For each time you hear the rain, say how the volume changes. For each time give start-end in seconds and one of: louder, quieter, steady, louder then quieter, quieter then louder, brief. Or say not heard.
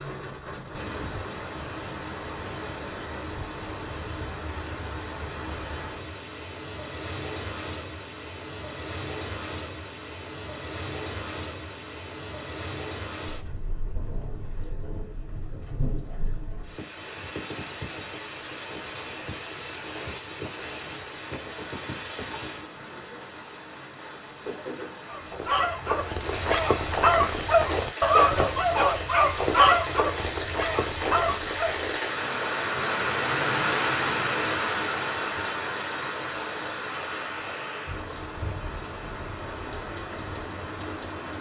0.0-41.3 louder.